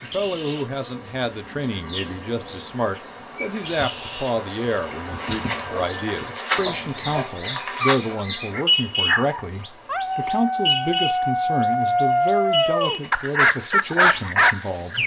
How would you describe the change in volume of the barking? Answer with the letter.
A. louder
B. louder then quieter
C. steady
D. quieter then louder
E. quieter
A.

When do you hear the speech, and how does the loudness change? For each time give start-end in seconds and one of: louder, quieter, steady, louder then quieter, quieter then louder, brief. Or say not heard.
0.0-15.0 steady.